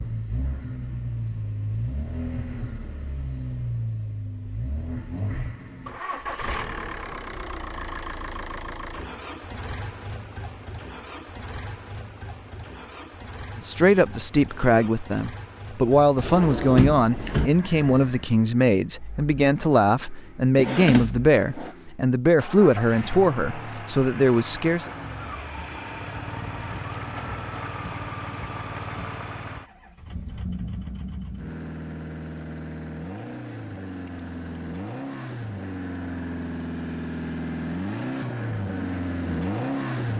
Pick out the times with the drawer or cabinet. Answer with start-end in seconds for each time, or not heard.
16.1-17.5, 20.6-21.8.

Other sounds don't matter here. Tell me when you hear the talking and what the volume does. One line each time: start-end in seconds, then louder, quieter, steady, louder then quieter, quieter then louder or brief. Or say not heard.
13.6-24.9 steady.